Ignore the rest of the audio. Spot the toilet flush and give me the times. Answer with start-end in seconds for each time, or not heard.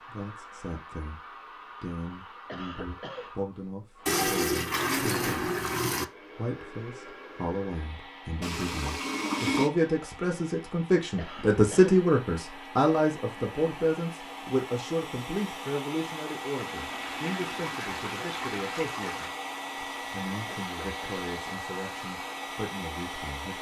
4.0-6.0, 8.4-9.7, 16.6-19.3.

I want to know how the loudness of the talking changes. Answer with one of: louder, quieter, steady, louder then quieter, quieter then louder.
louder then quieter.